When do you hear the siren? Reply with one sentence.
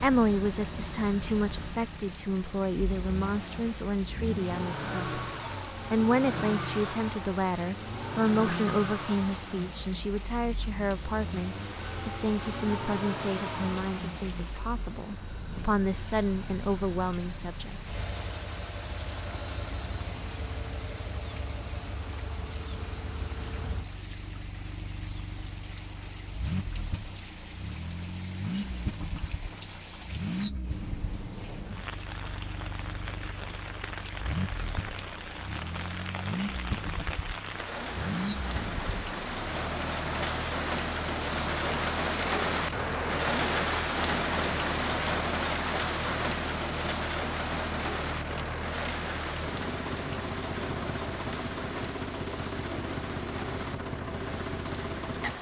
You can't hear the siren here.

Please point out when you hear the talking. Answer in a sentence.
You can hear the talking from 0.0 to 5.2 s and from 5.9 to 17.8 s.